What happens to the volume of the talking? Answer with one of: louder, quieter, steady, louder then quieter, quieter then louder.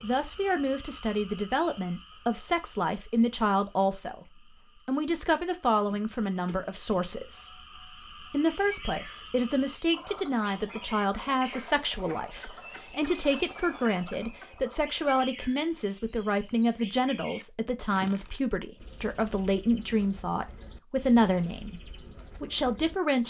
steady.